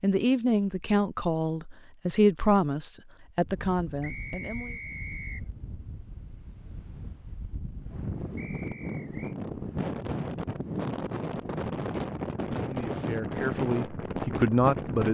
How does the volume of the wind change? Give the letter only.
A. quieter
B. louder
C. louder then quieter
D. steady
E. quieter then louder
B.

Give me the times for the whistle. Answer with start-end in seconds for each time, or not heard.
4.0-5.5, 8.3-9.3.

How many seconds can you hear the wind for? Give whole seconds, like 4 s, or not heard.
12 s.